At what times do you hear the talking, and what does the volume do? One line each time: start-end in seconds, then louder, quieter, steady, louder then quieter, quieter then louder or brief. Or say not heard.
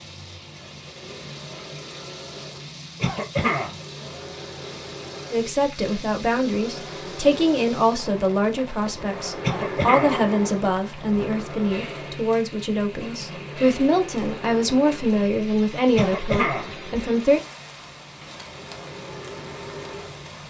5.3-17.4 steady.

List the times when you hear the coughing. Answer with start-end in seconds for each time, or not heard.
3.0-3.8, 9.4-10.2, 15.9-16.7.